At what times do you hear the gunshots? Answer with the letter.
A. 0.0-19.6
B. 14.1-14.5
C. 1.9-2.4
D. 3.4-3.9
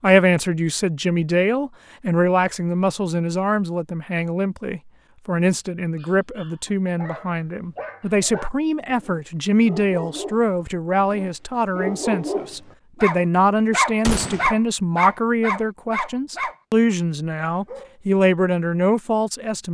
B.